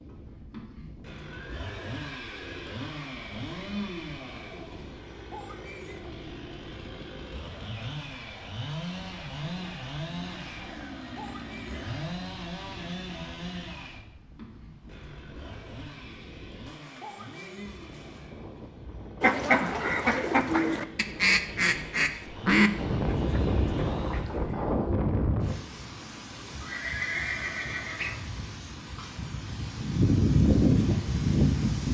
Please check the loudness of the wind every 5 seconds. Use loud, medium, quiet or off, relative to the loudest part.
quiet, quiet, quiet, quiet, medium, quiet, loud.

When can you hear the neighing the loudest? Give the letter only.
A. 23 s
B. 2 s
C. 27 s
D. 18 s
C.